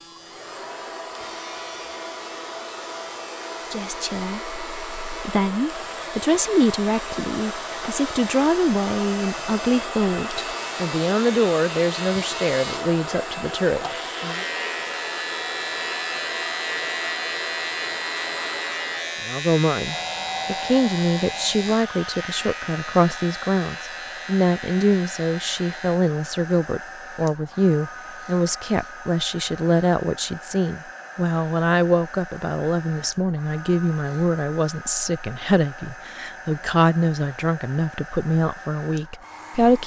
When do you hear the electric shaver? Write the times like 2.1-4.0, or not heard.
0.0-26.0.